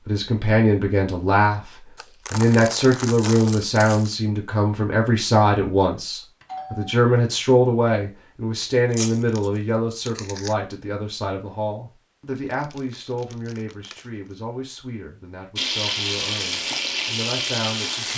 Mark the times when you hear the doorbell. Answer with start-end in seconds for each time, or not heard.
6.4-7.0.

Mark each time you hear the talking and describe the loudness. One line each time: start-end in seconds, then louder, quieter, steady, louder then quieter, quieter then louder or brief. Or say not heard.
0.1-18.1 quieter.